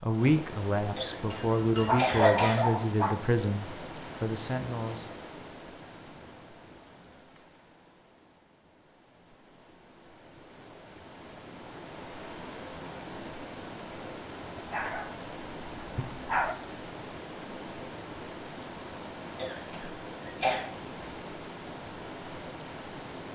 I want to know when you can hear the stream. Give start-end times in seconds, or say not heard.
0.0-23.3.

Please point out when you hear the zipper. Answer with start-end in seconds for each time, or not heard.
not heard.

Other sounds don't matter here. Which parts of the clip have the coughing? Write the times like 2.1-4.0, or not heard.
0.9-2.6, 19.4-20.6.